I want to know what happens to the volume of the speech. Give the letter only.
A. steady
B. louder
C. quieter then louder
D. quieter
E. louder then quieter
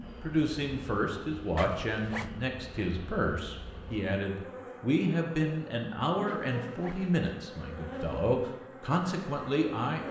A.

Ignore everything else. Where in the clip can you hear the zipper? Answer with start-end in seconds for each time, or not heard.
1.6-2.3, 6.2-7.0.